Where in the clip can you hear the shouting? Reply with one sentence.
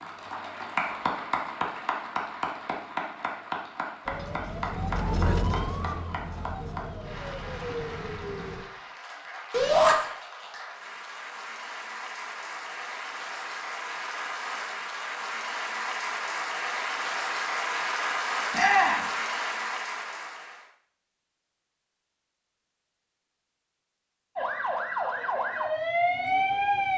The shouting can be heard from 9.5 to 9.9 s and from 18.5 to 19.1 s.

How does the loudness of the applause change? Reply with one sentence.
The loudness of the applause goes down, then up.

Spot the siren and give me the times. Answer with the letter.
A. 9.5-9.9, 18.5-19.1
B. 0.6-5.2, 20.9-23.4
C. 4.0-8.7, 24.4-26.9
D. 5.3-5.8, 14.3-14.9
C.